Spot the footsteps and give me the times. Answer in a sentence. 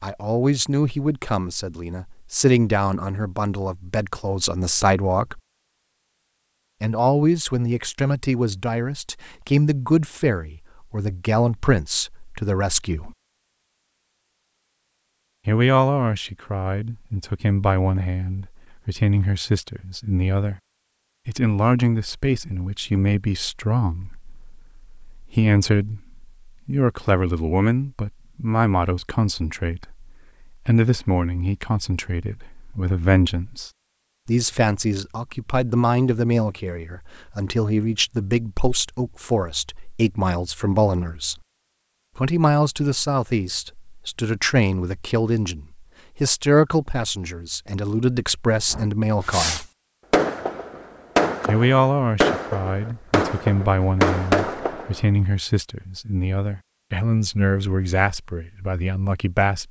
The footsteps can't be heard in this clip.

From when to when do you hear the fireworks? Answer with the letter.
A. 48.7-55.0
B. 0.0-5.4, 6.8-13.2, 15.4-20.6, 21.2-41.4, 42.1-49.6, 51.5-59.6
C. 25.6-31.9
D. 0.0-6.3
A.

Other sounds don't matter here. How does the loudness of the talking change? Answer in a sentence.
The volume of the talking stays about the same.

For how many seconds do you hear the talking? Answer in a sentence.
You can hear the talking for 53 seconds altogether.